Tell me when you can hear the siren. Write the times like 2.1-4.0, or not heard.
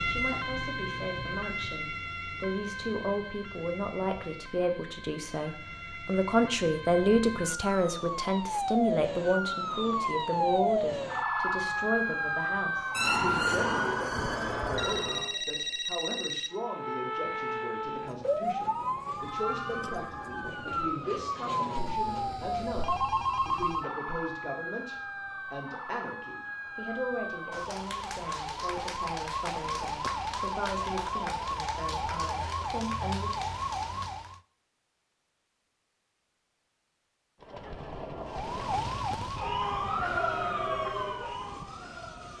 0.0-15.3, 16.5-34.4, 38.2-42.3.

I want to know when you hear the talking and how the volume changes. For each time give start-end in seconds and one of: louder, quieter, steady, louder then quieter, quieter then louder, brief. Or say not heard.
0.1-33.3 quieter.